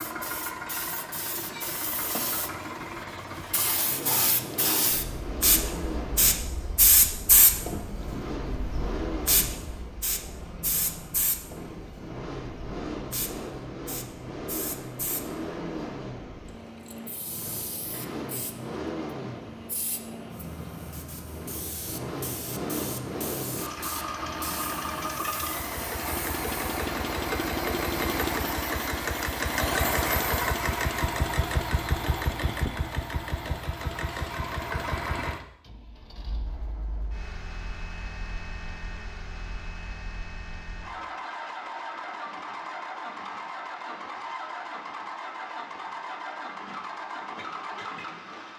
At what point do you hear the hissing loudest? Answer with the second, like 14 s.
7 s.